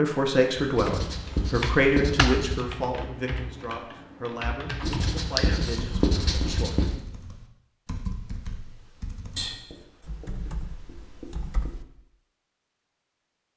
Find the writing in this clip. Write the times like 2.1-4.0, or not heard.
0.8-2.6, 4.8-7.0, 9.3-11.8.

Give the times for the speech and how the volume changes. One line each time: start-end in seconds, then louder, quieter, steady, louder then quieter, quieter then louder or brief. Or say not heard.
0.0-6.8 quieter.